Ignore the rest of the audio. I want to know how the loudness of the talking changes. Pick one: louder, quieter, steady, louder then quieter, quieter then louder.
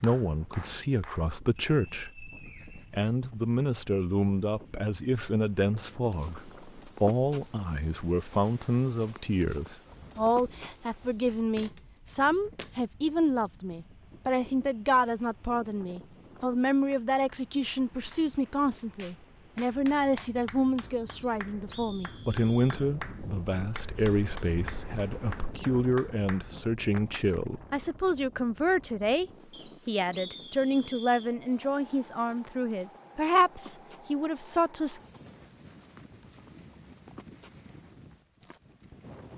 steady.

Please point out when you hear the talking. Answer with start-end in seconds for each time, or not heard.
0.0-35.0.